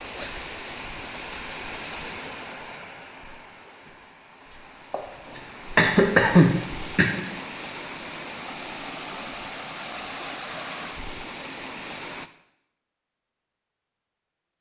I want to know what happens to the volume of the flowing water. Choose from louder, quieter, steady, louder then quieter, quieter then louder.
quieter then louder.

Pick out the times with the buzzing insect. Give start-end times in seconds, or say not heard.
not heard.